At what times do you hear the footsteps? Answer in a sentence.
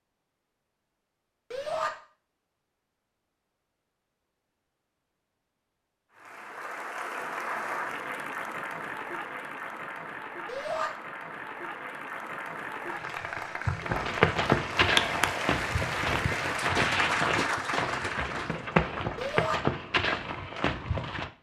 You can hear the footsteps from 13.8 to 21.3 s.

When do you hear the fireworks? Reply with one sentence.
You can't hear the fireworks here.